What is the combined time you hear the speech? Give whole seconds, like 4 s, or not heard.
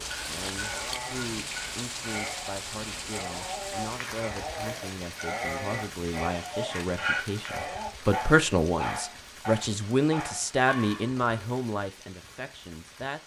13 s.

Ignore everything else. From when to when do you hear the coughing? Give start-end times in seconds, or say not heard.
not heard.